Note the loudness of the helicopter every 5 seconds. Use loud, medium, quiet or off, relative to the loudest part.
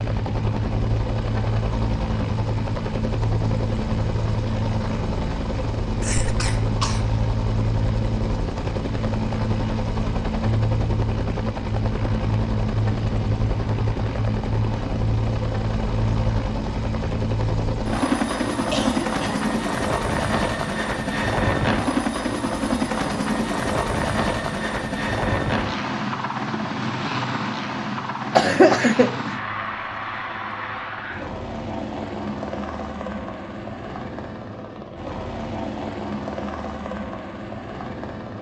loud, loud, loud, loud, loud, loud, medium, medium.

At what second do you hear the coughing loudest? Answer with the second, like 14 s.
29 s.